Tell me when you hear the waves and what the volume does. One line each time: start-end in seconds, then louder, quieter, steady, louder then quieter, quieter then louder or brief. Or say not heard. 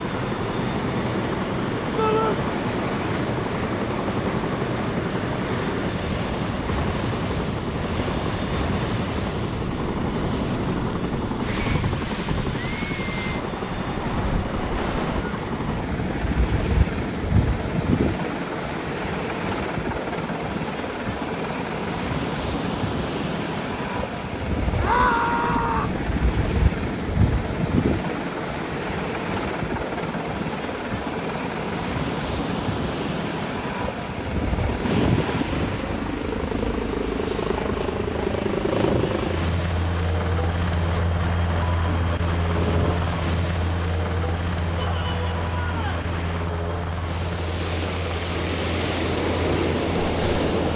0.0-50.7 steady.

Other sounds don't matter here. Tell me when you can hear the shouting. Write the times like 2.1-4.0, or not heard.
1.9-2.4, 24.8-25.9, 44.8-46.1.